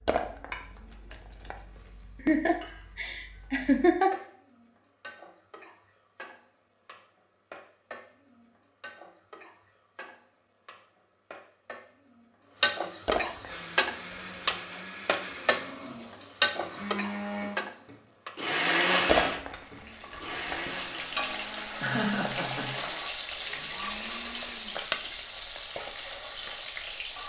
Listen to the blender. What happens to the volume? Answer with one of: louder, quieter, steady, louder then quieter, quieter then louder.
louder then quieter.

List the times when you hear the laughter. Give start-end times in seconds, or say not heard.
2.2-4.2, 21.8-22.9.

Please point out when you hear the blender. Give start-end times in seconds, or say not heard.
13.4-25.3.